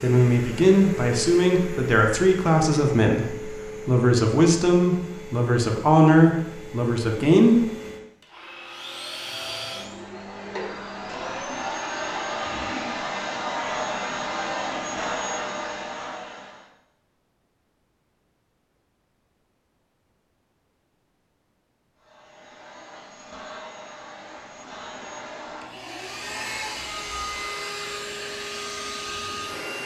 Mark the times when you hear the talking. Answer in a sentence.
You can hear the talking from 0.0 to 7.6 s.